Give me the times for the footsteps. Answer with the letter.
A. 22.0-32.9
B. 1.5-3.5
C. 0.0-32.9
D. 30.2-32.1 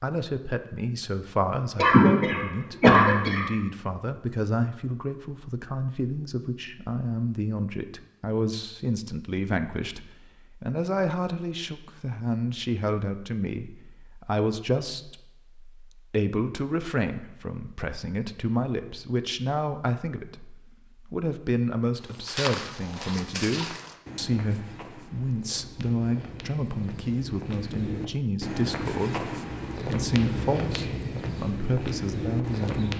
A.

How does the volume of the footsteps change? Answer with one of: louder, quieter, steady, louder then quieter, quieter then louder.
quieter then louder.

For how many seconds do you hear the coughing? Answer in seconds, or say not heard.
2 s.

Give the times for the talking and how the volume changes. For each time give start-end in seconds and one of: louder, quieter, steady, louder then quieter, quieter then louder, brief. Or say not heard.
0.0-32.9 steady.